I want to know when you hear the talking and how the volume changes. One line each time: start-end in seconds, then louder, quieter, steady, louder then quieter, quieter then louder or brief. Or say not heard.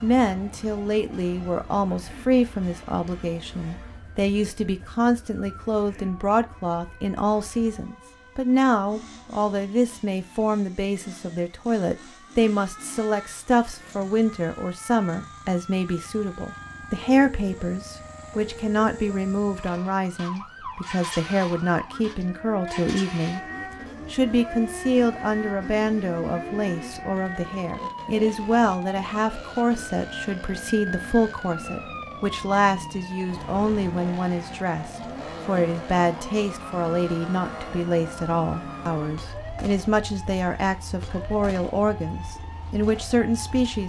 0.0-23.4 steady
24.1-43.8 steady.